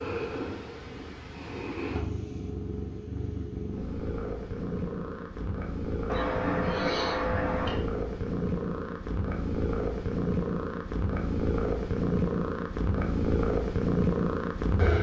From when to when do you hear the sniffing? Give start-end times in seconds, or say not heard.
6.0-7.8.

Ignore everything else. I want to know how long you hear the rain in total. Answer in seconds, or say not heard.
not heard.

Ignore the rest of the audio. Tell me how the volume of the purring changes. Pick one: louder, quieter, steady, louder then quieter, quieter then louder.
louder.